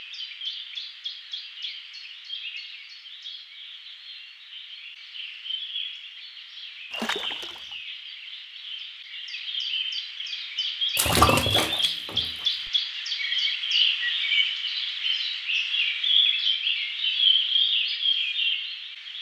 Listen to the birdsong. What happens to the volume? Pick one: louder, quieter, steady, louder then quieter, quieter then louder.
louder.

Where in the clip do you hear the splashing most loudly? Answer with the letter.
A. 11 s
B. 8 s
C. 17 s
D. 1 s
A.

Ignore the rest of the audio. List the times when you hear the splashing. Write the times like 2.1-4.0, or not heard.
6.9-7.8, 10.9-12.7.